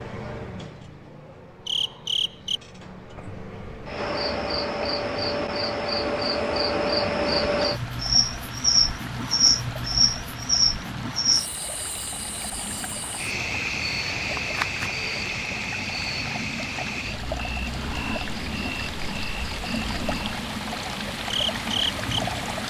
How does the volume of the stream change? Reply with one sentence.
The volume of the stream goes up.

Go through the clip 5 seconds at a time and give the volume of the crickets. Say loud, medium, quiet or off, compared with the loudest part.
medium, loud, loud, medium, medium.